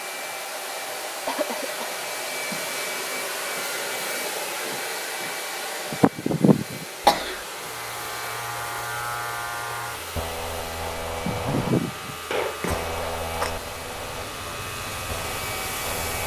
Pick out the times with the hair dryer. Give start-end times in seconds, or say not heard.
0.0-16.2.